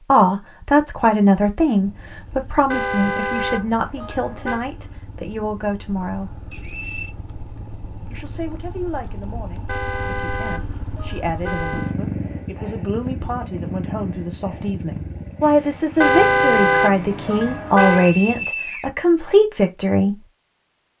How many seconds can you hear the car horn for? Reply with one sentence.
The car horn can be heard for 6 seconds in total.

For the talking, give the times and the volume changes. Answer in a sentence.
You can hear the talking from 0.1 to 6.3 s, getting quieter; and from 8.1 to 20.2 s, getting louder.